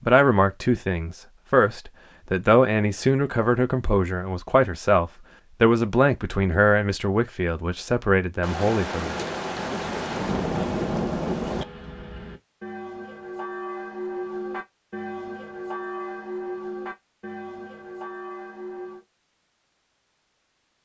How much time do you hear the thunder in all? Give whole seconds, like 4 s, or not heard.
3 s.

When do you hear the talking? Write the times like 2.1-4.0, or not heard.
0.0-9.2.